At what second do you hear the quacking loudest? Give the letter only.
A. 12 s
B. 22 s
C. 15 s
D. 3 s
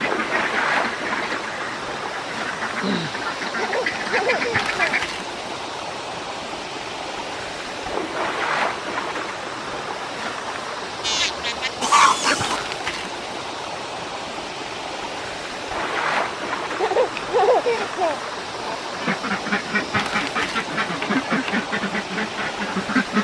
A.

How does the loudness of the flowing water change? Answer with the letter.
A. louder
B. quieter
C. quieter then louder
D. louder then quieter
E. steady
E.